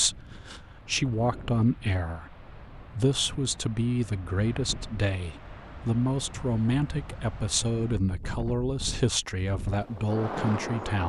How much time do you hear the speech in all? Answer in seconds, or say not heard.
11 s.